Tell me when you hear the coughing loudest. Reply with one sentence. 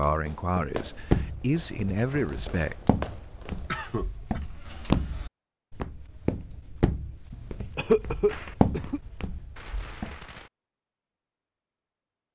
The loudest moment of the coughing is at 8 seconds.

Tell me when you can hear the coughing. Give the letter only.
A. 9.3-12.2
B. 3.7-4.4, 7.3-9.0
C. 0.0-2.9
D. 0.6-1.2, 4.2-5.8
B.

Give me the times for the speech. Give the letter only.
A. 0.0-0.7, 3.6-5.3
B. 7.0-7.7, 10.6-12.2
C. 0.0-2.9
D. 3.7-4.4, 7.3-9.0
C.